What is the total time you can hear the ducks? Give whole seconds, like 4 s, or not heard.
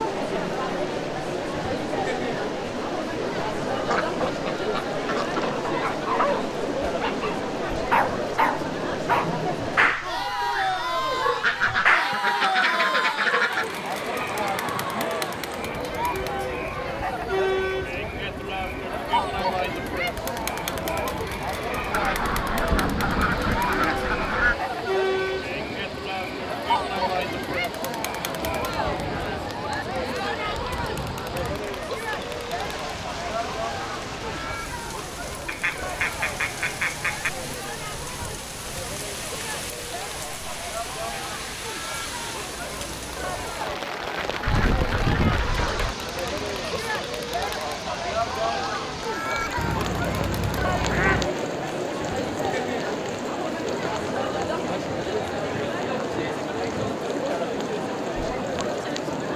12 s.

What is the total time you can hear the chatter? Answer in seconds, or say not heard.
59 s.